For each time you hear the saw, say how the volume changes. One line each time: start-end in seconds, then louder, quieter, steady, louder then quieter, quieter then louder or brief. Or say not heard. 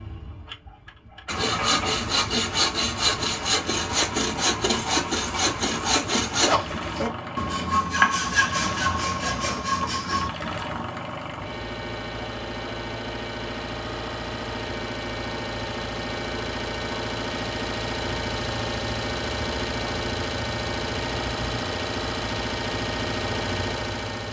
1.2-10.3 steady.